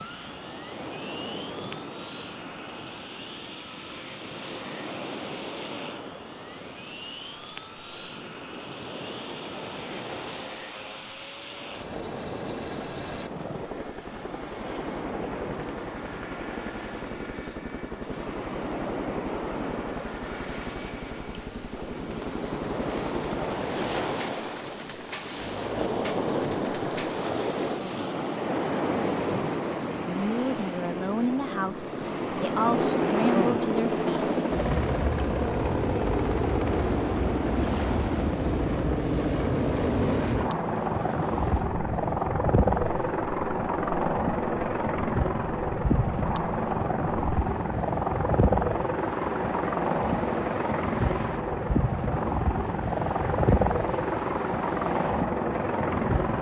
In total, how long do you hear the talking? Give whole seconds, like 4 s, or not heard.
4 s.